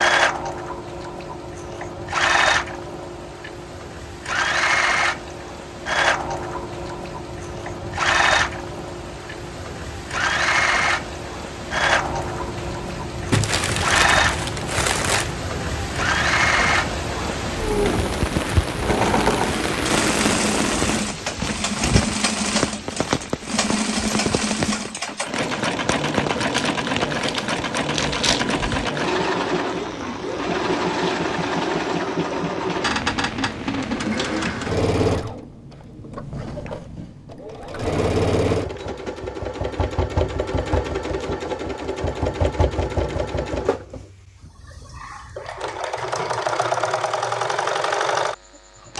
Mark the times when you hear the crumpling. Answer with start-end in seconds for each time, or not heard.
13.3-15.3, 26.5-28.4.